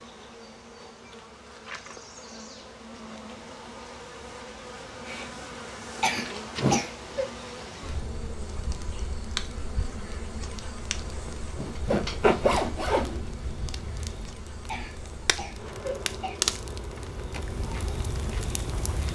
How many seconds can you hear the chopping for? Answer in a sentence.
You can't hear the chopping here.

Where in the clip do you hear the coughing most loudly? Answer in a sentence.
The volume of the coughing peaks at 7 seconds.